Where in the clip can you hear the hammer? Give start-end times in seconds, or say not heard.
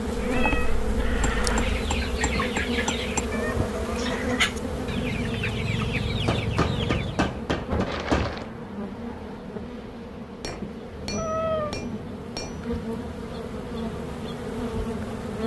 1.2-3.2, 6.1-8.3, 10.4-12.7.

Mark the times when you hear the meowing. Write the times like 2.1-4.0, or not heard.
0.1-1.8, 7.8-8.4, 10.4-11.8.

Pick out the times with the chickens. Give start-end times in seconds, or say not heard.
1.4-7.4.